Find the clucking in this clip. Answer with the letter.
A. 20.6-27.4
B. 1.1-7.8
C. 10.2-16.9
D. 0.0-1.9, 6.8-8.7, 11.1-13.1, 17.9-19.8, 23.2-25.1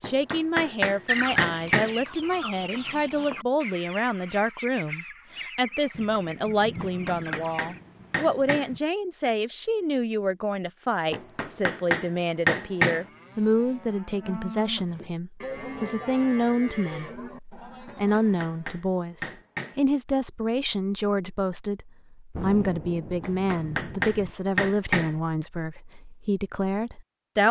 B.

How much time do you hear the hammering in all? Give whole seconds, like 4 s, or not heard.
10 s.